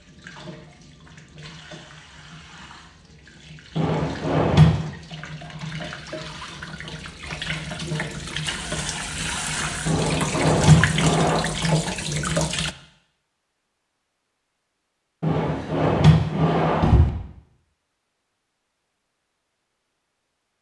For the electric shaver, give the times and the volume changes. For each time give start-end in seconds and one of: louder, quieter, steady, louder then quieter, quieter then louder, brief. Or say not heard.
not heard.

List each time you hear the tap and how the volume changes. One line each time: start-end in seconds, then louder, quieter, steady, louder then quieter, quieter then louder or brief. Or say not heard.
0.0-12.8 louder.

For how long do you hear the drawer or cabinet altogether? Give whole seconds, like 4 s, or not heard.
5 s.